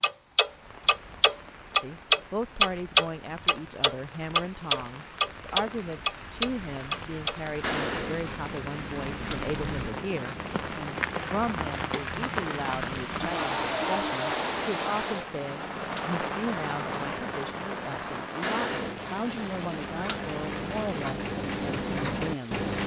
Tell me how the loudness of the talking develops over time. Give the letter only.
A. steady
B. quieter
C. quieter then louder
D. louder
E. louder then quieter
A.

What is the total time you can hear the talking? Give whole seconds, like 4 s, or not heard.
21 s.